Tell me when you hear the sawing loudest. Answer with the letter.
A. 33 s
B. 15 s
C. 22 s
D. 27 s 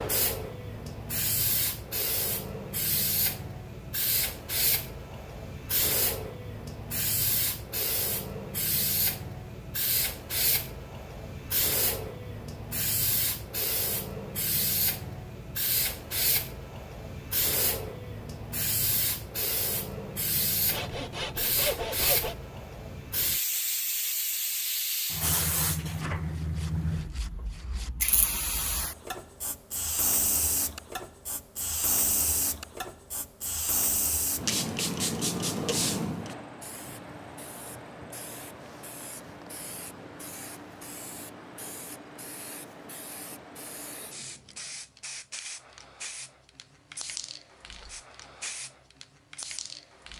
C.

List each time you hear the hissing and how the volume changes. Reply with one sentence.
The hissing can be heard from 0.0 to 50.1 s, getting quieter.